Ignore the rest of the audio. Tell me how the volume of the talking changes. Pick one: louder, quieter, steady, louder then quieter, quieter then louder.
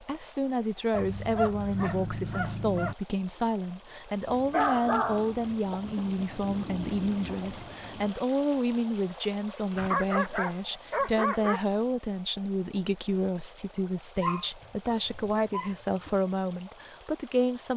steady.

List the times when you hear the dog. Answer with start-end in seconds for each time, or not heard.
0.9-3.0, 4.5-6.0, 9.7-11.6, 14.2-16.1.